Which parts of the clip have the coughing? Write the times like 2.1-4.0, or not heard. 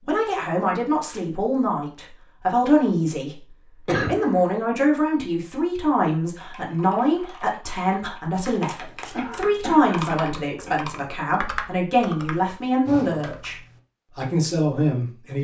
3.9-4.5, 9.1-10.8.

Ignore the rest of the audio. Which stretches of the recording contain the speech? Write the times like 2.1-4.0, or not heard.
0.1-3.4, 4.0-13.6, 14.2-15.3.